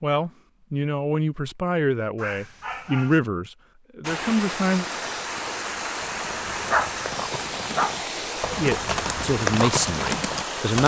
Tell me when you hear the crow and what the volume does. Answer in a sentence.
The crow can't be heard in this clip.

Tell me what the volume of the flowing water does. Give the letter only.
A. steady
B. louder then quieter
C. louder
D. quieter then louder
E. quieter
A.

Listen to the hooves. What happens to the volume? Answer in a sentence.
The loudness of the hooves goes up.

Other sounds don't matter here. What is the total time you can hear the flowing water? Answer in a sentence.
The flowing water can be heard for 7 seconds in total.